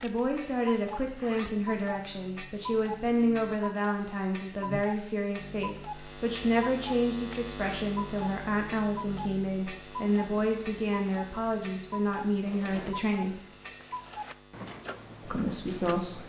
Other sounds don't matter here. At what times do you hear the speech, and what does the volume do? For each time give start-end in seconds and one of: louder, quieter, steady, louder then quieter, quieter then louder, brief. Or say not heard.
0.0-13.3 steady
15.2-16.2 brief.